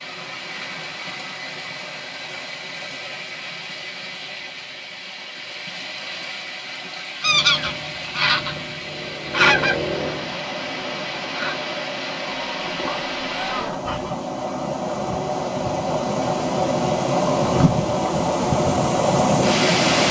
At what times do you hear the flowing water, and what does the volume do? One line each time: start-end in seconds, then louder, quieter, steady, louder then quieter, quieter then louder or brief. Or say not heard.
0.0-20.0 louder.